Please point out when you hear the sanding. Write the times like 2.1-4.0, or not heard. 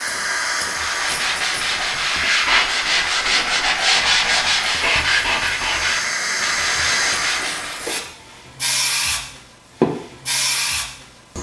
0.6-8.0.